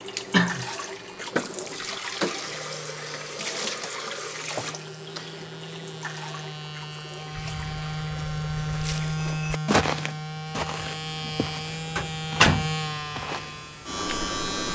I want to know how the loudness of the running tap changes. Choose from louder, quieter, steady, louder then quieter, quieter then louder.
quieter.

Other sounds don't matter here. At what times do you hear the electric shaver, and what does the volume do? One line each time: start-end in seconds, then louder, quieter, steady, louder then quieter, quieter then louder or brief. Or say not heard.
0.0-14.7 louder.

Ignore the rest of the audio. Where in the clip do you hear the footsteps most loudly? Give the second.
10 s.